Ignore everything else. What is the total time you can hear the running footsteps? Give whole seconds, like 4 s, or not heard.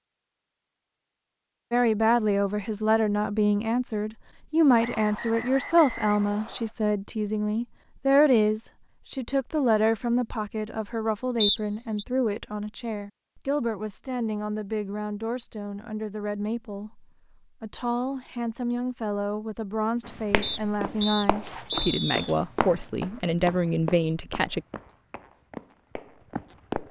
7 s.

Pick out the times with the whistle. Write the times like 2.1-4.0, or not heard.
4.8-6.7, 11.4-12.1, 20.4-22.4.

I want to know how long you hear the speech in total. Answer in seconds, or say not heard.
23 s.